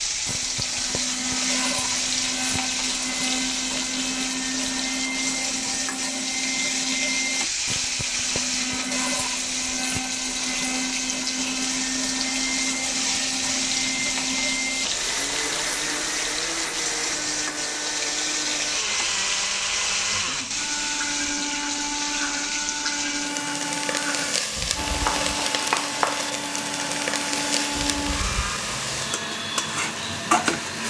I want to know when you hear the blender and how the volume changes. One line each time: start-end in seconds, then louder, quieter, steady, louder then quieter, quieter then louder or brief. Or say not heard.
0.1-30.8 steady.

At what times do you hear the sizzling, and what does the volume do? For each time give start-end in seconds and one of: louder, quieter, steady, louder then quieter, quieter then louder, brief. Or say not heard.
0.0-30.8 steady.